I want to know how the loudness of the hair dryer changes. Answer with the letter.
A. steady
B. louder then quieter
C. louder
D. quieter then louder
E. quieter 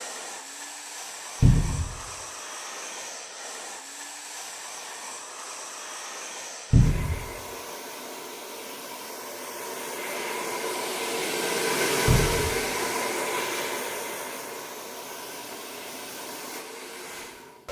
B.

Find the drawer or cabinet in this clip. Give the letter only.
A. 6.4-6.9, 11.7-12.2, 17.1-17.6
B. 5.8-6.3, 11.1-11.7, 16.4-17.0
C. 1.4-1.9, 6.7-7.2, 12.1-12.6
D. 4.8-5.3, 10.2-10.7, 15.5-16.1
C.